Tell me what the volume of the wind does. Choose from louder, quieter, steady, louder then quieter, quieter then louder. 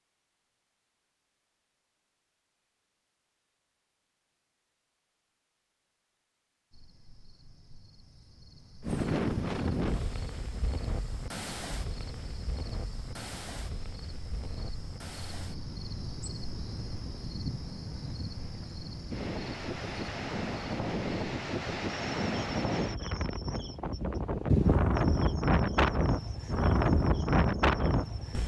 quieter then louder.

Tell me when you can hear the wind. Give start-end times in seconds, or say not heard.
8.8-28.4.